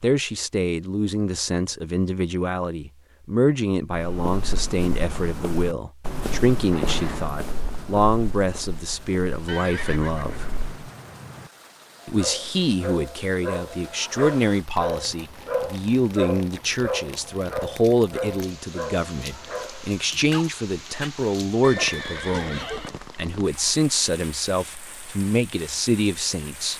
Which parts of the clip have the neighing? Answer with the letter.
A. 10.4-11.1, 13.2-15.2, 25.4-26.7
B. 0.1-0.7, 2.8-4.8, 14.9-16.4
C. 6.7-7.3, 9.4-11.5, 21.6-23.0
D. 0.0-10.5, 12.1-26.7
C.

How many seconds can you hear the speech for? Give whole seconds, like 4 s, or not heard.
25 s.